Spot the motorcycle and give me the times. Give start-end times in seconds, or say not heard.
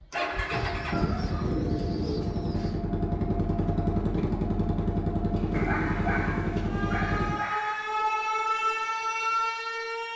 0.1-7.3.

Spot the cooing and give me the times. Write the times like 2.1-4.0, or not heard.
0.5-2.8, 5.3-7.3.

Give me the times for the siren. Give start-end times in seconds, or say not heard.
6.5-10.1.